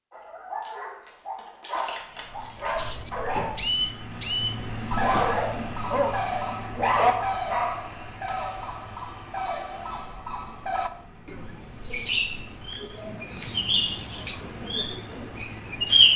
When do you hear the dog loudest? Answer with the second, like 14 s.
7 s.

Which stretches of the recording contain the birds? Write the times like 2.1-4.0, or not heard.
2.8-16.1.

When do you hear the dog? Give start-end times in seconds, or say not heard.
0.1-3.7, 4.8-8.3.